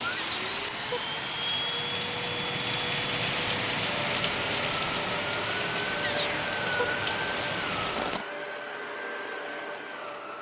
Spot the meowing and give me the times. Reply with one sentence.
You can hear the meowing from 0.1 to 1.0 s and from 6.0 to 6.8 s.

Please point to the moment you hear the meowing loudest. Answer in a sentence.
The loudest moment of the meowing is at 6 seconds.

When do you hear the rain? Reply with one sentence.
The rain can be heard from 0.0 to 8.2 s.